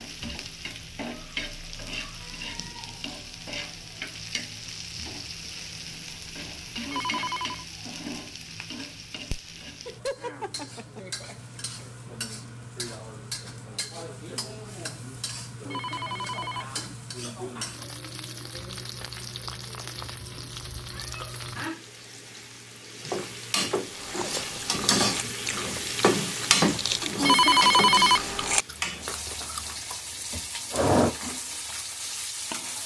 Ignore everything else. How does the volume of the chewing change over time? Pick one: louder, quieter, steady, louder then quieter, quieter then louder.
louder.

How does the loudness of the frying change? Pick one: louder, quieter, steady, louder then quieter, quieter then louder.
louder.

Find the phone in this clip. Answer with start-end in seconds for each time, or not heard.
6.8-7.7, 15.7-16.6, 27.2-28.2.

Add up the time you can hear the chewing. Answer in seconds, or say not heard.
8 s.